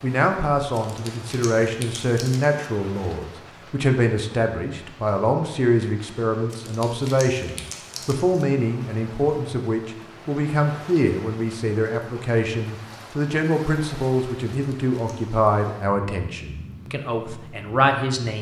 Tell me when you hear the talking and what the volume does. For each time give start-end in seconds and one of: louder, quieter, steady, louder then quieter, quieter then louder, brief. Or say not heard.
0.0-18.3 steady.